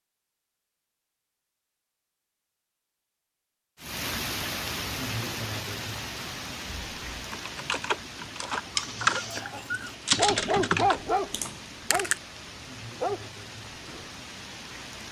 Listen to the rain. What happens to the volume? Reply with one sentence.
The volume of the rain goes down.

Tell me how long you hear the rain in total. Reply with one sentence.
The rain can be heard for 11 seconds in total.